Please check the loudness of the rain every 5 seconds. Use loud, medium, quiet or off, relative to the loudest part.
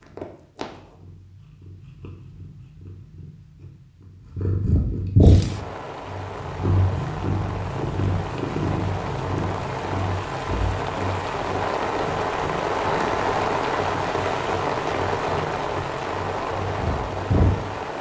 off, medium, loud, loud.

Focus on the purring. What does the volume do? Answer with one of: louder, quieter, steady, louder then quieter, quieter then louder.
louder then quieter.